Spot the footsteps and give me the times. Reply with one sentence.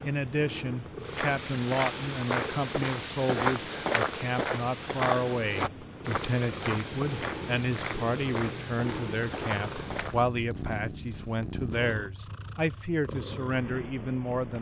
The footsteps can be heard from 1.0 to 10.2 s.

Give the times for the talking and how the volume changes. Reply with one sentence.
The talking can be heard from 0.0 to 14.5 s, at a steady volume.